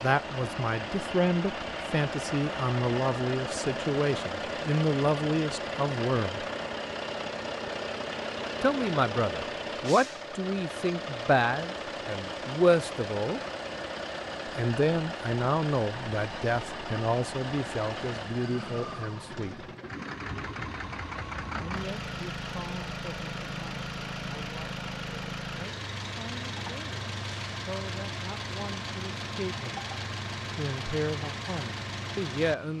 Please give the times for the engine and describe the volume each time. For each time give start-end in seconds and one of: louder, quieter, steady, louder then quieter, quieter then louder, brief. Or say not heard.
0.0-32.7 steady.